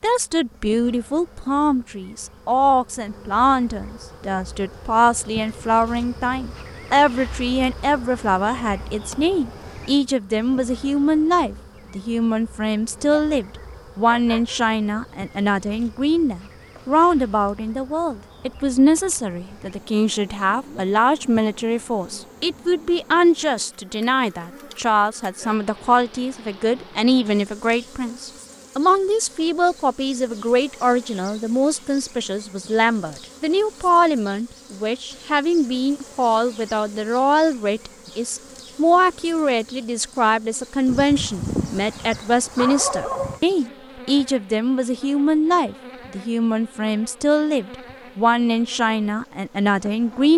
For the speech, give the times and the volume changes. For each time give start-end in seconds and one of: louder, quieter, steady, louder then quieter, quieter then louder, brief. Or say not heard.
0.0-50.3 steady.